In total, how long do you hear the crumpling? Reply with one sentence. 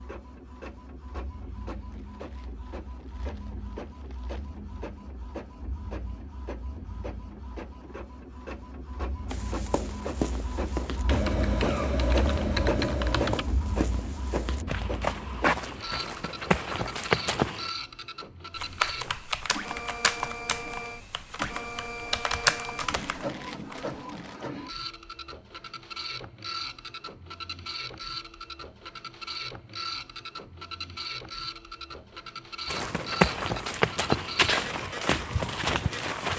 The crumpling can be heard for 4 seconds in total.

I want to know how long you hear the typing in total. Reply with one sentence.
The typing can be heard for 8 seconds in total.